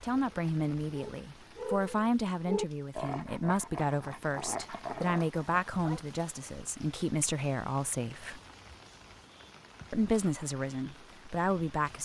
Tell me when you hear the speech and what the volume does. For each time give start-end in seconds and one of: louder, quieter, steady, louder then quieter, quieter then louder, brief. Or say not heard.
0.0-8.4 steady
9.9-11.9 brief.